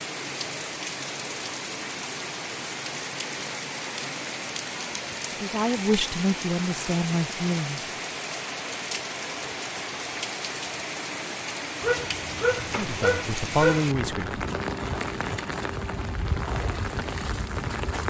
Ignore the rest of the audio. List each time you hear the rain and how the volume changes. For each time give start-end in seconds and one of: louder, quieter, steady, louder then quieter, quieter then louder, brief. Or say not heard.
0.0-18.0 steady.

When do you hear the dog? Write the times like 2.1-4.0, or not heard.
11.8-13.8.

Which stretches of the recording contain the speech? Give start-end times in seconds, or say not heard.
5.3-7.9, 12.8-14.4.